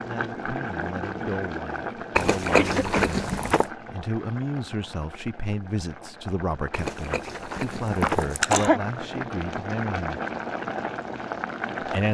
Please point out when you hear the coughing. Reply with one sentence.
You can hear the coughing from 2.5 to 3.1 s and from 8.0 to 8.8 s.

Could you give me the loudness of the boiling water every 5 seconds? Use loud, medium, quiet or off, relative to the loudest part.
loud, medium, loud.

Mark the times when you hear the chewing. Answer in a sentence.
You can hear the chewing from 2.1 to 3.7 s and from 6.7 to 8.7 s.